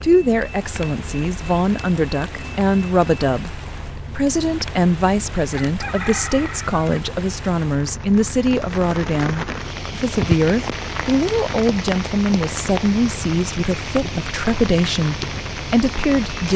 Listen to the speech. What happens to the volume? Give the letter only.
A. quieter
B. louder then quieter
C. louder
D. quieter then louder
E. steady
E.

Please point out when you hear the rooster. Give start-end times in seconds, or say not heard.
5.5-7.0.